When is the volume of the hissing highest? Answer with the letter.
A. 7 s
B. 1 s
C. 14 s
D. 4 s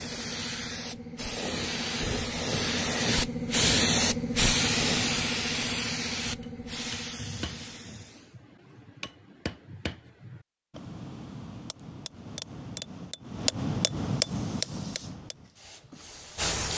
D.